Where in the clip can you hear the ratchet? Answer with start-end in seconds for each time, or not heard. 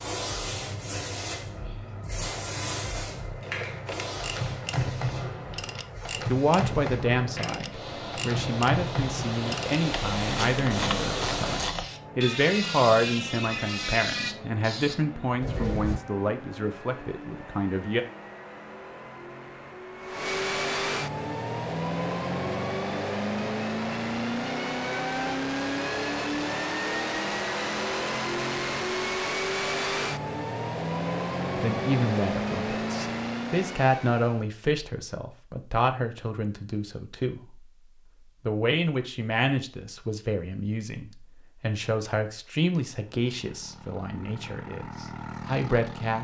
3.4-14.3.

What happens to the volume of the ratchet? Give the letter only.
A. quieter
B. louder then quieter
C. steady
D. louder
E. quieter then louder
C.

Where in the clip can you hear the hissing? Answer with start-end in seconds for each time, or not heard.
0.0-16.0.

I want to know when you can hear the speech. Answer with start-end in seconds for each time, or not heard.
6.2-18.1, 31.6-37.7, 38.5-46.1.